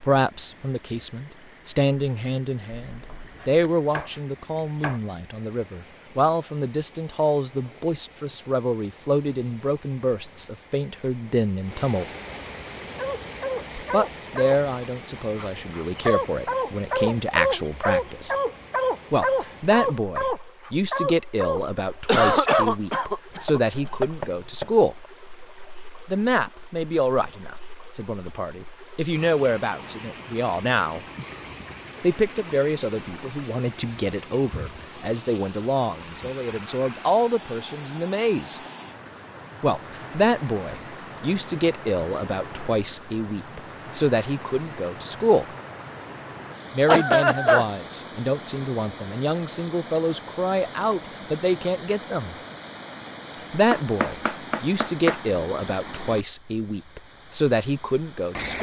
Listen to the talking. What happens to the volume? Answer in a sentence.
The loudness of the talking stays about the same.